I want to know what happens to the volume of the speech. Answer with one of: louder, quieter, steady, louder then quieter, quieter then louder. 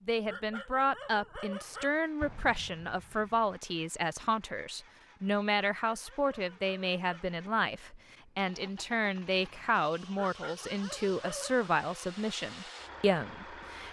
steady.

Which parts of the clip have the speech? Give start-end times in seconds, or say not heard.
0.1-13.8.